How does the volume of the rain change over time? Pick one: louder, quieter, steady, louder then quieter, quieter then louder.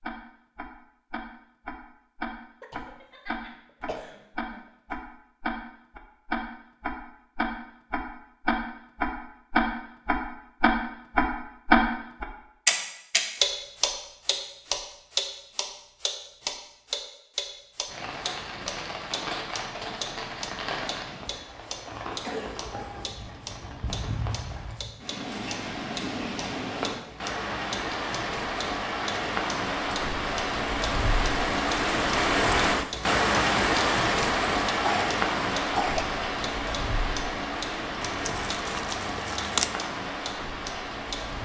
louder then quieter.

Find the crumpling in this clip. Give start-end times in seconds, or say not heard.
38.0-39.8.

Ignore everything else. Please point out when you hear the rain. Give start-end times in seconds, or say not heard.
17.9-41.4.